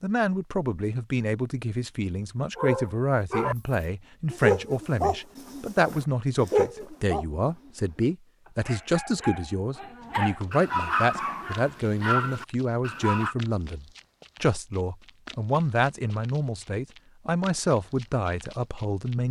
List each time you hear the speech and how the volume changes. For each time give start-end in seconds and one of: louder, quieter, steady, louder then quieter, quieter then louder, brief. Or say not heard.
0.0-19.2 steady.